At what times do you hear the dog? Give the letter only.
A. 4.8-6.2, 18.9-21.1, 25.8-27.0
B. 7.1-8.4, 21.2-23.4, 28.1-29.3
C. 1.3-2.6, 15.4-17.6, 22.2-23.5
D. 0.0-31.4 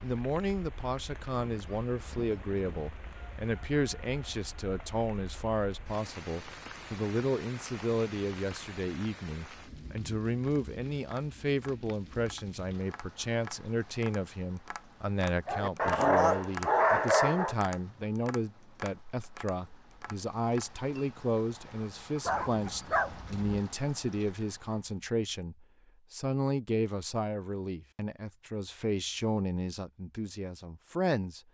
C.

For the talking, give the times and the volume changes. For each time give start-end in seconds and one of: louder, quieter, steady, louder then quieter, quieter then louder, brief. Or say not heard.
0.0-31.4 steady.